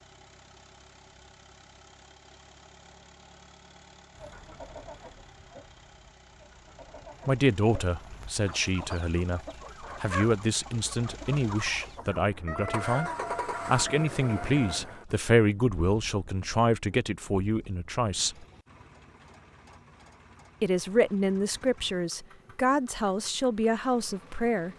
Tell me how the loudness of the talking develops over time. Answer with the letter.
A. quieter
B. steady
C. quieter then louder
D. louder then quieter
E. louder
B.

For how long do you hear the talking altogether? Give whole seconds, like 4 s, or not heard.
15 s.